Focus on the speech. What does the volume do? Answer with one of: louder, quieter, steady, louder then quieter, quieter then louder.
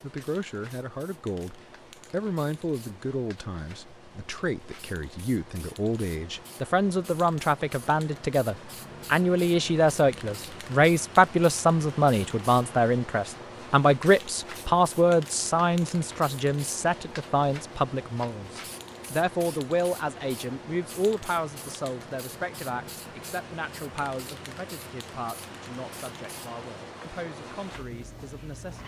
louder then quieter.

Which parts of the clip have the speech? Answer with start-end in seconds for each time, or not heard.
0.0-28.8.